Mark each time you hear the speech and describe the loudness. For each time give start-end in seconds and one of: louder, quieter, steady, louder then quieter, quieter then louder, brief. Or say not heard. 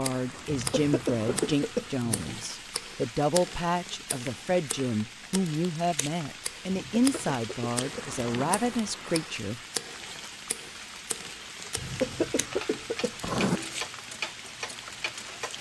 0.0-9.6 steady.